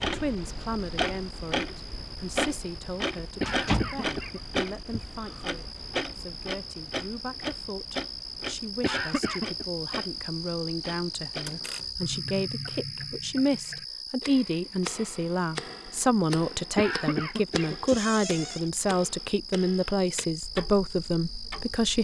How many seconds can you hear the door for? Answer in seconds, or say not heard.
2 s.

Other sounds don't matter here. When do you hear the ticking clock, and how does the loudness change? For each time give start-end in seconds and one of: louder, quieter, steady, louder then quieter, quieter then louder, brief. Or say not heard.
0.0-22.0 quieter.